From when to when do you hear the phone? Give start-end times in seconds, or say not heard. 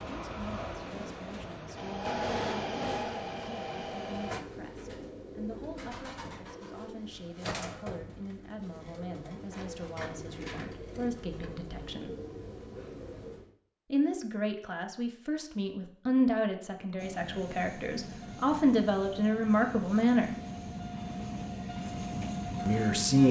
not heard.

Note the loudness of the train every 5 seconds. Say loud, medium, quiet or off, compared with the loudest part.
loud, off, off, medium, loud.